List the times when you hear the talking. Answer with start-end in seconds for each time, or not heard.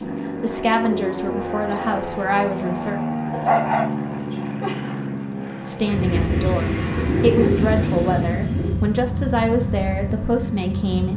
0.0-3.0, 5.7-11.1.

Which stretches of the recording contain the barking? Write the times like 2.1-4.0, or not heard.
3.3-4.8.